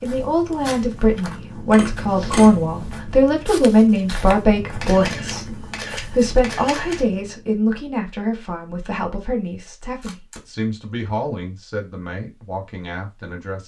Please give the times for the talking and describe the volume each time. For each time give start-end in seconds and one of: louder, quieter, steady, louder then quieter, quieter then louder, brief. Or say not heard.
0.0-13.6 quieter.